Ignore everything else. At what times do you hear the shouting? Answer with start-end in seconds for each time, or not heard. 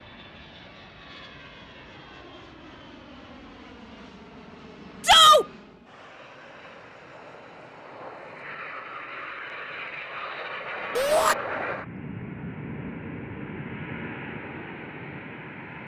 5.0-5.5, 10.9-11.3.